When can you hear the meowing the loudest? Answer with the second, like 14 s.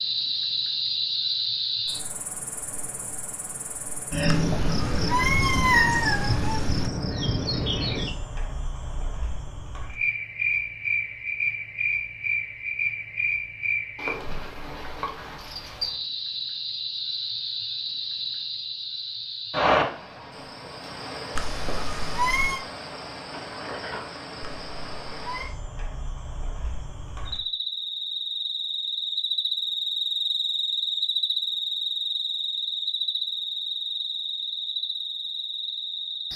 6 s.